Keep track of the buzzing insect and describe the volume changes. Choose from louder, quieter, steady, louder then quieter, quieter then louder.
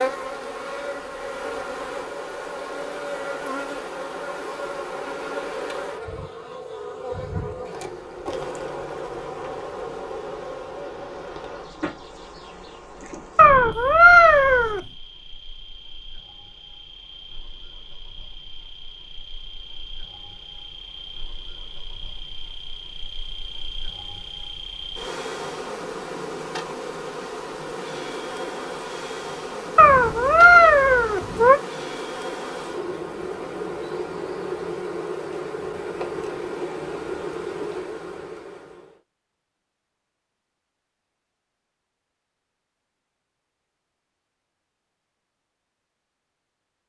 quieter then louder.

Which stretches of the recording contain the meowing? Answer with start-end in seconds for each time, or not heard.
13.3-14.8, 29.8-31.6.